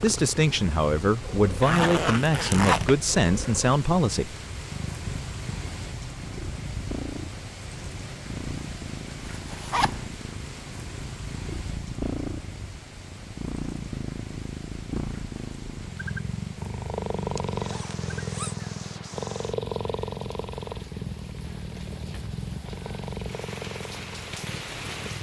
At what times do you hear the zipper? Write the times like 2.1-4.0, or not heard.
1.6-3.0, 9.3-10.1, 17.4-18.6.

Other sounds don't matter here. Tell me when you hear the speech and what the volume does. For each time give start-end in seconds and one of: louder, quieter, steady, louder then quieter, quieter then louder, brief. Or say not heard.
0.0-4.3 steady.